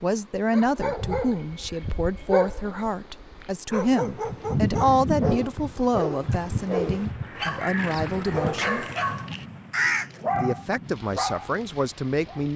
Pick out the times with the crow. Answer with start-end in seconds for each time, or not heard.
4.0-10.2.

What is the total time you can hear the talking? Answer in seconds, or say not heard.
11 s.